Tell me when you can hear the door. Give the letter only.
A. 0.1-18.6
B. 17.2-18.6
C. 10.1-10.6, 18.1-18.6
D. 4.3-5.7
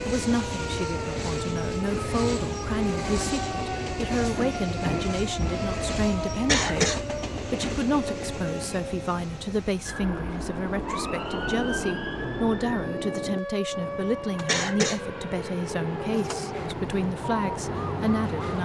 D.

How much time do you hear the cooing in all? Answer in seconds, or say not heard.
not heard.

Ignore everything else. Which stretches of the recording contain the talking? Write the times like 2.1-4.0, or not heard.
0.1-18.6.